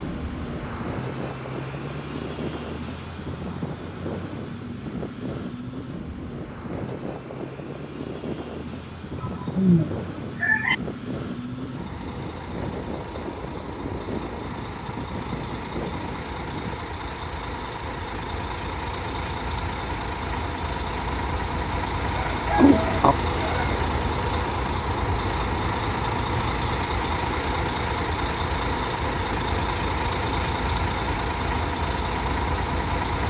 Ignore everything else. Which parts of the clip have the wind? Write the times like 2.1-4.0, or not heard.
0.0-16.8.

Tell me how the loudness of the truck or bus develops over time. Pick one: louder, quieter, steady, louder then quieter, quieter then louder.
louder.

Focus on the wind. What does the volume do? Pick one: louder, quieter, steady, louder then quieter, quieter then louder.
steady.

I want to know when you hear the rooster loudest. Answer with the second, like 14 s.
10 s.